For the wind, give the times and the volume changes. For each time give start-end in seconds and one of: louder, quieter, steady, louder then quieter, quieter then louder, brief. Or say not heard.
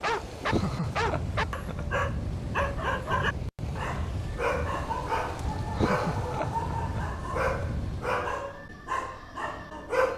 0.0-8.4 steady.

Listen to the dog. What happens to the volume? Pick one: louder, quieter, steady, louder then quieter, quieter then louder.
steady.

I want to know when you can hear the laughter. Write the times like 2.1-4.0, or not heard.
0.5-1.9, 5.8-7.1.